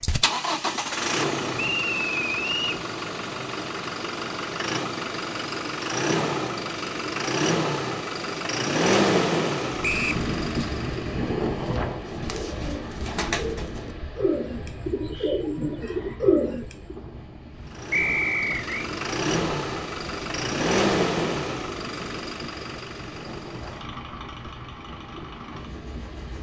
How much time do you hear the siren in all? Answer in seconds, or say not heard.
not heard.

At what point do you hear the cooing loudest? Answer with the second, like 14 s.
16 s.